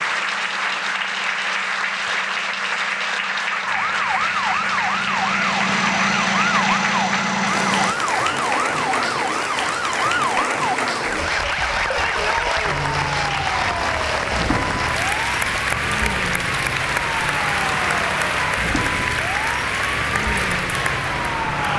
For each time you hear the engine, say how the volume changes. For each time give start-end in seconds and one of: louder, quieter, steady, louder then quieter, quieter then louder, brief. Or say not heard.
0.0-8.0 louder.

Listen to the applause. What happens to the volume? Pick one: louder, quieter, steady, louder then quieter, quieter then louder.
steady.